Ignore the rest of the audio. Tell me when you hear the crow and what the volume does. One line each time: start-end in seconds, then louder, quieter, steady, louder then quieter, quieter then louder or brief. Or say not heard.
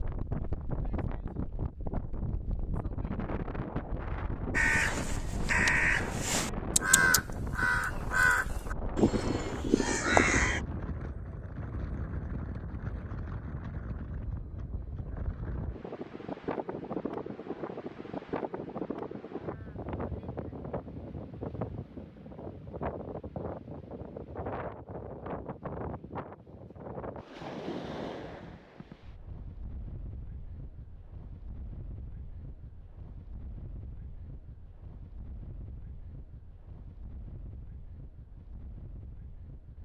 4.5-10.6 steady.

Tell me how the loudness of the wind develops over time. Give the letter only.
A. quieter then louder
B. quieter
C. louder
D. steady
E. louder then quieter
B.